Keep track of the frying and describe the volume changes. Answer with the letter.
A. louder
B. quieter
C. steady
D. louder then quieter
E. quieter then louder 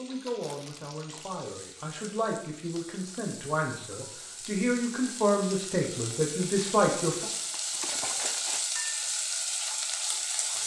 A.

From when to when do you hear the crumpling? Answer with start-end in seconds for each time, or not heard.
0.4-1.4, 7.3-8.7.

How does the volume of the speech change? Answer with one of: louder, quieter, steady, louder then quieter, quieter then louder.
louder.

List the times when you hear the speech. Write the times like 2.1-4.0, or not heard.
0.0-7.2.